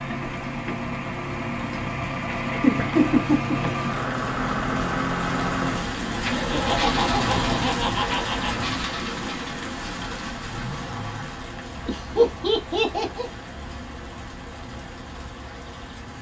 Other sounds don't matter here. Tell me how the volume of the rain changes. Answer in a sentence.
The volume of the rain goes up, then down.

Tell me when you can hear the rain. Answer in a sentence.
You can hear the rain from 0.0 to 16.1 s.